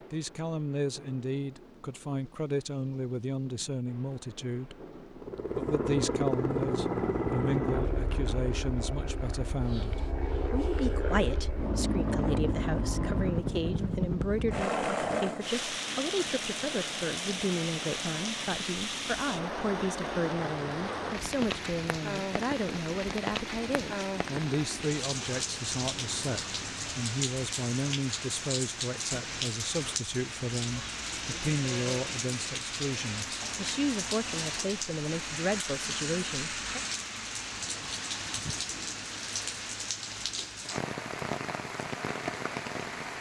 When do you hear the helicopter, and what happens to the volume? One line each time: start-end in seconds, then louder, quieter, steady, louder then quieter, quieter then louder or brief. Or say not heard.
5.2-26.9 quieter.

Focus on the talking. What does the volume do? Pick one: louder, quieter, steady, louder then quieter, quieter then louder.
steady.